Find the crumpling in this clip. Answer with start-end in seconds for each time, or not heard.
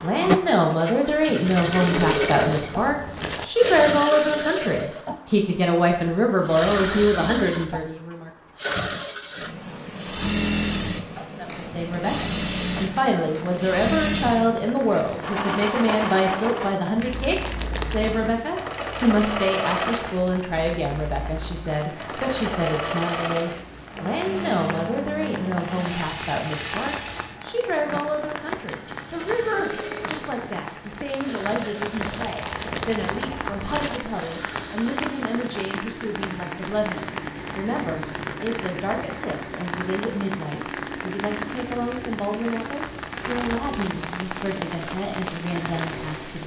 1.4-3.5, 16.9-18.4, 31.9-34.0.